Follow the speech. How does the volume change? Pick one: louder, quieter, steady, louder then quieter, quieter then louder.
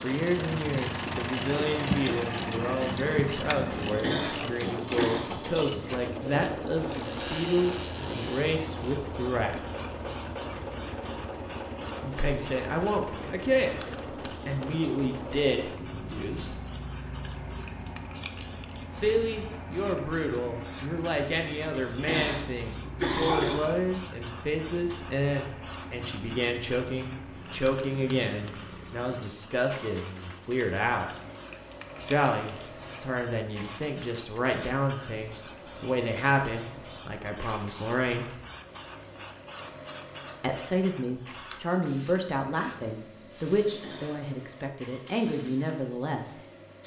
steady.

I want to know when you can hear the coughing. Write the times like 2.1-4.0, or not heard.
3.8-5.2, 21.7-23.6, 43.7-44.2.